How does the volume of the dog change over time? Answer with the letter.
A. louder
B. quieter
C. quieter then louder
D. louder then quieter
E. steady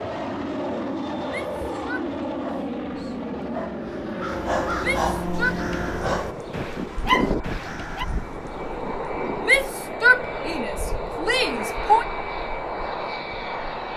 A.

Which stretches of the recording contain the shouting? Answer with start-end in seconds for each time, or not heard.
1.2-2.0, 4.8-5.5, 9.4-12.1.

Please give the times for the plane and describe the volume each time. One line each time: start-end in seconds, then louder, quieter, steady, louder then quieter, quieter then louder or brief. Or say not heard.
0.0-13.9 quieter then louder.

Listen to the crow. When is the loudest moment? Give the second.
7 s.